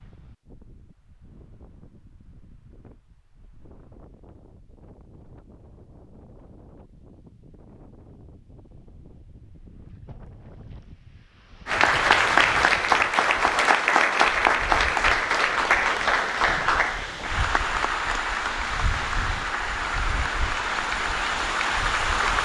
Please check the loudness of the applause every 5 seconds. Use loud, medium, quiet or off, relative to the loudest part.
off, off, loud, medium, medium.